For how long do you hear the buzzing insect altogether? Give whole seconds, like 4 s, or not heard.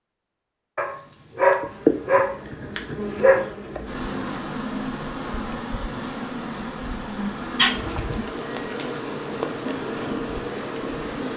10 s.